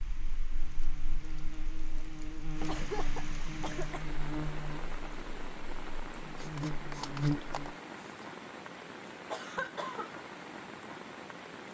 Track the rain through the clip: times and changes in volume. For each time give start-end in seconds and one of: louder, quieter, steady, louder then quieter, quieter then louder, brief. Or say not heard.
0.0-11.6 louder.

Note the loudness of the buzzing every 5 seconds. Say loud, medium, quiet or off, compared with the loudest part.
medium, loud, off.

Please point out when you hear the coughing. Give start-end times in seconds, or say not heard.
2.6-4.2, 9.3-10.1.